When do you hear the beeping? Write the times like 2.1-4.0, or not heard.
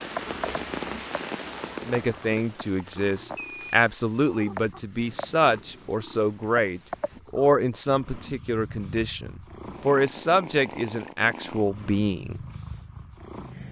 3.1-3.9.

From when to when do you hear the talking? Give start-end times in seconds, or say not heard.
1.8-12.4.